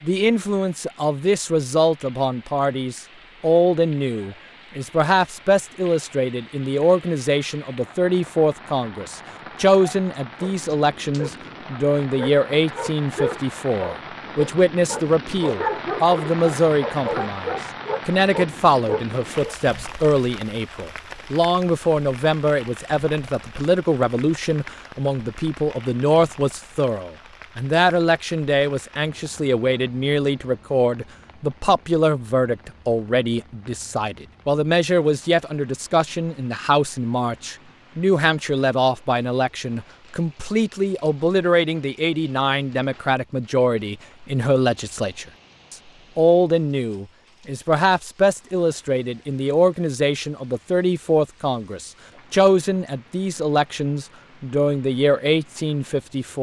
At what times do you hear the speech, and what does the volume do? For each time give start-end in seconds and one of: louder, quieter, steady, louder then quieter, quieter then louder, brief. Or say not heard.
0.0-56.3 steady.